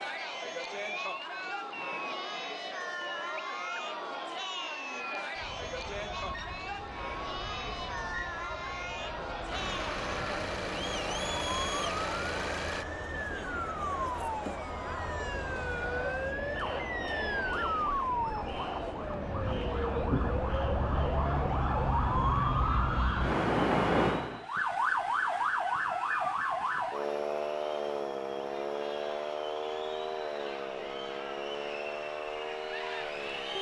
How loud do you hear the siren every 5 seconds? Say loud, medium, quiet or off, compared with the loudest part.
quiet, quiet, medium, medium, loud, loud, medium.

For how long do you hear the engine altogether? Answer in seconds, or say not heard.
3 s.